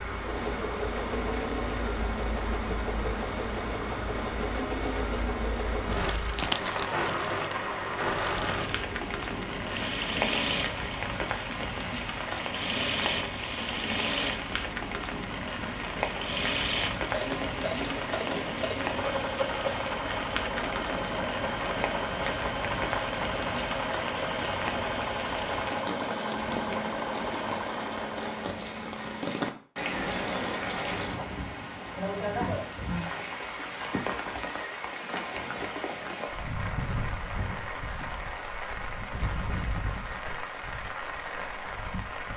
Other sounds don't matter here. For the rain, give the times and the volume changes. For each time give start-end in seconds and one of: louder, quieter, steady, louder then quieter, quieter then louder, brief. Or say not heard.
0.0-42.3 steady.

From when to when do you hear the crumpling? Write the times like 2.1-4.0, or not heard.
6.0-7.0.